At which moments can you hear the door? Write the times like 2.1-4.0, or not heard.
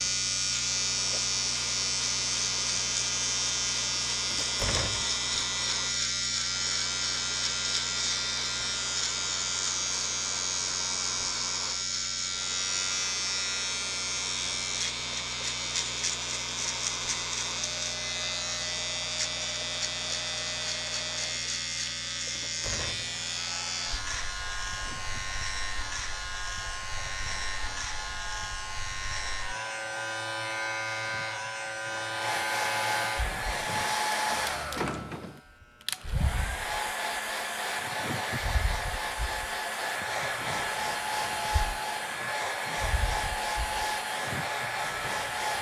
4.3-5.2, 22.4-23.1, 34.3-35.4.